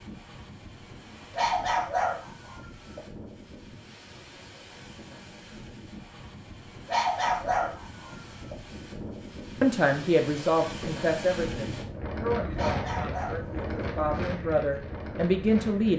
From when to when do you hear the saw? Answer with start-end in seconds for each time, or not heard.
not heard.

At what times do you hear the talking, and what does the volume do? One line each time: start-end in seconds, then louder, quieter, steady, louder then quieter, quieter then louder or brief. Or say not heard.
9.6-15.9 quieter then louder.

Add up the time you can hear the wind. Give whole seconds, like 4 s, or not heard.
16 s.